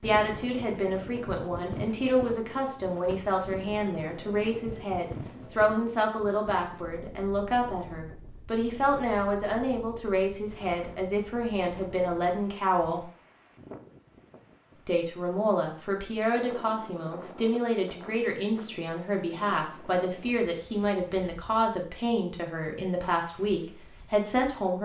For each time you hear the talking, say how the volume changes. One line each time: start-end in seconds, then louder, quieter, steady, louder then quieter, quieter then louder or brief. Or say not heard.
0.0-13.1 steady
14.8-24.7 steady.